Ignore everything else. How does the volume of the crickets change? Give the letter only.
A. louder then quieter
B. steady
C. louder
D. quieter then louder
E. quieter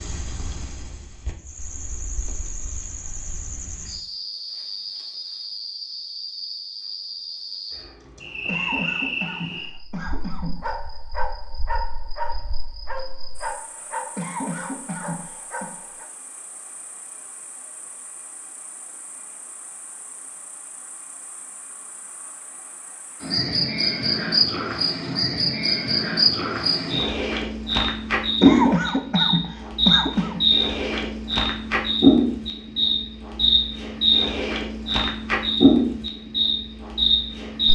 D.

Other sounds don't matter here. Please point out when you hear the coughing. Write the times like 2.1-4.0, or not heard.
8.4-10.6, 14.2-15.7, 28.4-30.4.